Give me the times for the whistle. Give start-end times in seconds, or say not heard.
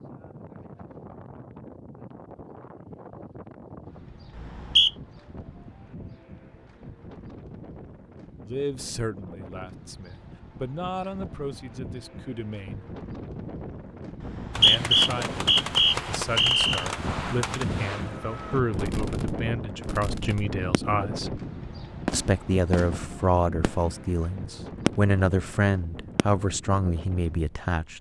4.3-4.9, 14.2-16.9.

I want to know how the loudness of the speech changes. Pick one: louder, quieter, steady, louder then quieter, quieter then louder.
louder.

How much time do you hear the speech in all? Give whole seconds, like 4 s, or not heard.
17 s.